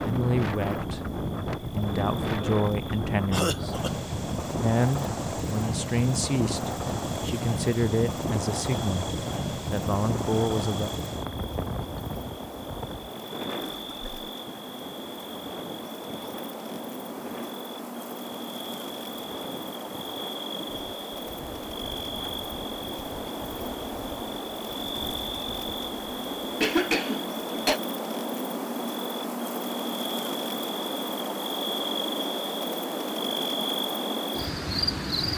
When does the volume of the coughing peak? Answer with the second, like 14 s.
27 s.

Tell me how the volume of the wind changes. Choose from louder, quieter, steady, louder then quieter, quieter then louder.
quieter.